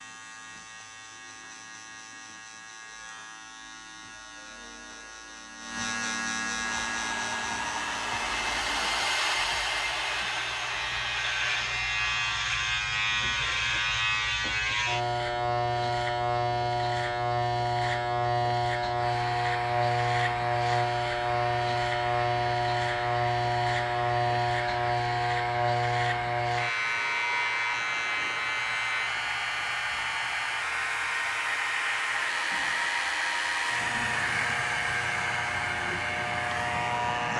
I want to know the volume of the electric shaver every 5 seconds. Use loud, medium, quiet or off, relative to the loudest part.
quiet, medium, loud, loud, loud, loud, medium, medium.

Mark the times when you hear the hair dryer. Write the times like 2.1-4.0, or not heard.
6.7-12.5, 18.9-37.3.